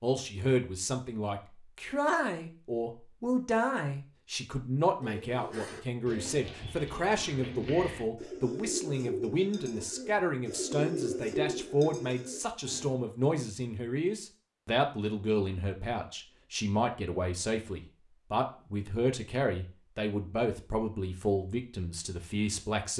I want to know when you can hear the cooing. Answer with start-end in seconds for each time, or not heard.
5.0-12.9.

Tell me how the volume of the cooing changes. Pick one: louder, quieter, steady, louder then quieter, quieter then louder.
louder.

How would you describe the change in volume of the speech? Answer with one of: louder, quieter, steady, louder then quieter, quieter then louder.
steady.